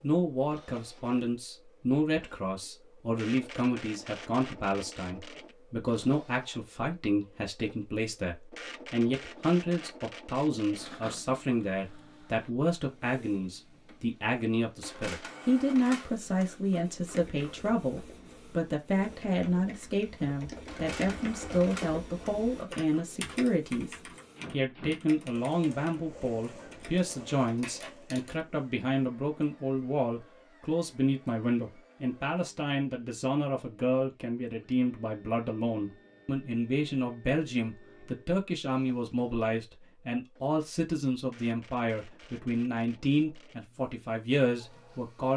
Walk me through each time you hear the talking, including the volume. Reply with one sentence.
You can hear the talking from 0.0 to 45.3 s, at a steady volume.